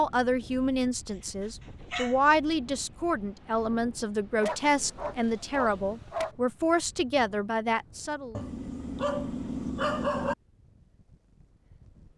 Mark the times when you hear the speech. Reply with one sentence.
The speech can be heard from 0.0 to 8.4 s.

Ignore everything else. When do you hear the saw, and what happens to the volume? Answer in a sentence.
You can't hear the saw here.